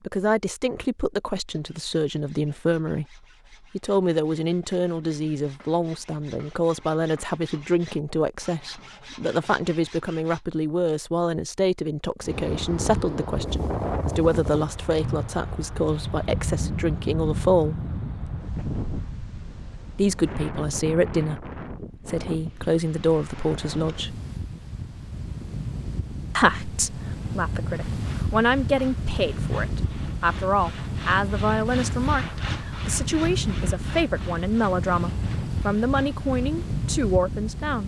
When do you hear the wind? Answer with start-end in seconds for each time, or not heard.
12.2-37.8.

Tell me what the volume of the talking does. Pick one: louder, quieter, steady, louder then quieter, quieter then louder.
steady.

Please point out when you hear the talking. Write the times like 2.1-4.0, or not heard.
0.1-17.8, 19.9-24.2, 26.4-37.8.